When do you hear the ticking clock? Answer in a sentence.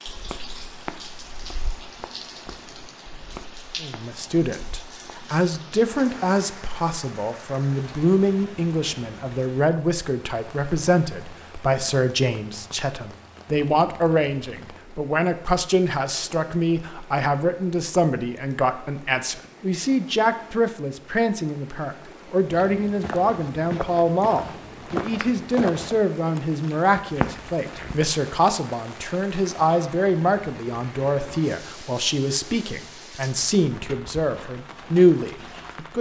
You can't hear the ticking clock here.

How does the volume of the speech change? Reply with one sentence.
The loudness of the speech stays about the same.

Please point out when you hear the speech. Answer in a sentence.
You can hear the speech from 3.8 to 35.9 s.